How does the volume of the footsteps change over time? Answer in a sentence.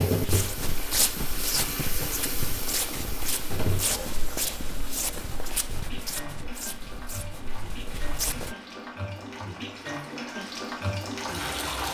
The volume of the footsteps goes down.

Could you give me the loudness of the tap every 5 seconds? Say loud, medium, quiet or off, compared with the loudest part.
loud, medium, loud.